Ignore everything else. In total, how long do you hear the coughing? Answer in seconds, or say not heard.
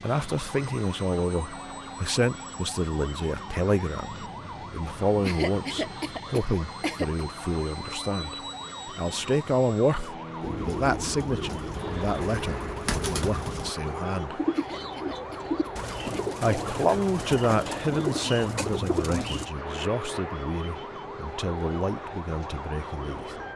4 s.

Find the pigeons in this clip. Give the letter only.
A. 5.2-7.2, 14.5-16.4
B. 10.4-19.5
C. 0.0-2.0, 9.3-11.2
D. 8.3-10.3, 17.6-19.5
B.